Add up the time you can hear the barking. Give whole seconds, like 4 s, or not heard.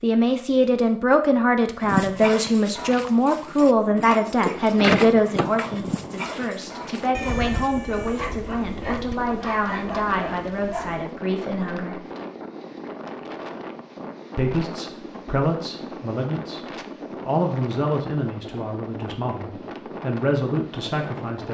9 s.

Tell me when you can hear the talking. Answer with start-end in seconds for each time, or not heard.
0.0-12.0, 14.3-16.6, 17.2-21.5.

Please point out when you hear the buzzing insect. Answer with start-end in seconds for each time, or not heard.
not heard.